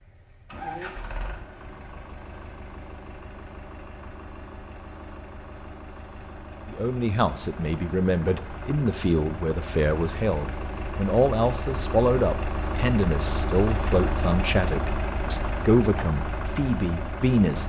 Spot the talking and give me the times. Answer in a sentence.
The talking can be heard from 6.7 to 17.6 s.